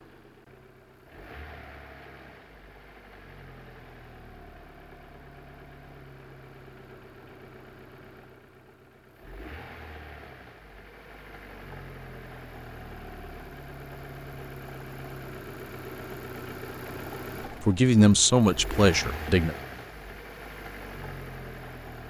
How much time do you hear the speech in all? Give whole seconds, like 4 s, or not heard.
2 s.